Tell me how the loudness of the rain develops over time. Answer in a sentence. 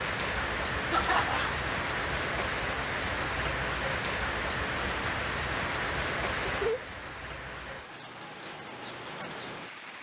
The volume of the rain goes down.